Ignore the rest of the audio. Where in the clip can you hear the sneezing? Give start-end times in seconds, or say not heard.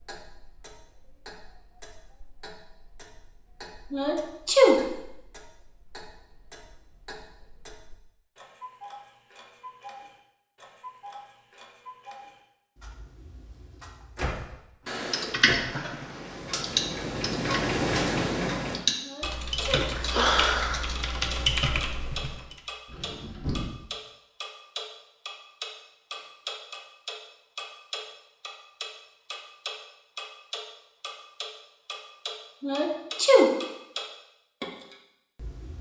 3.9-4.8, 19.0-19.9, 32.6-33.5.